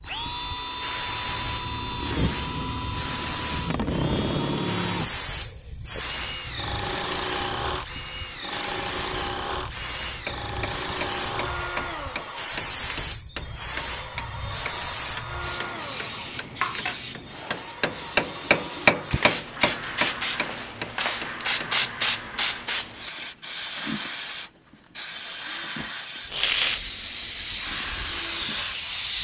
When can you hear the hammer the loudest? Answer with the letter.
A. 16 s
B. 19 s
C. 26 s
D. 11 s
B.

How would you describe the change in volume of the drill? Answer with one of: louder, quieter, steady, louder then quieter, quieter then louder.
quieter.